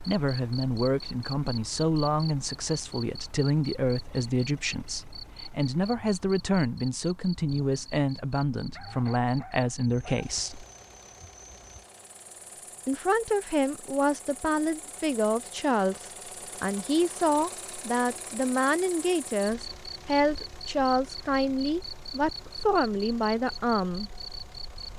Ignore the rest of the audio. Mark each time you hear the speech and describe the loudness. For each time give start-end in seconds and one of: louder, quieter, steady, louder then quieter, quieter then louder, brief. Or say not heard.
0.0-10.7 steady
12.8-24.1 steady.